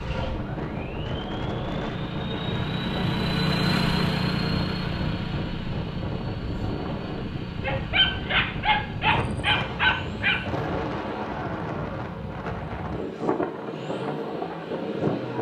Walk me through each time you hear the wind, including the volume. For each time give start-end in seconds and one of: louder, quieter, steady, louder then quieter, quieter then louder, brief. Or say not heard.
0.0-15.3 steady.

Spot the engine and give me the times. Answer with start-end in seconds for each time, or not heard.
0.0-15.3.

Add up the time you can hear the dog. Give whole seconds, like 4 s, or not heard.
3 s.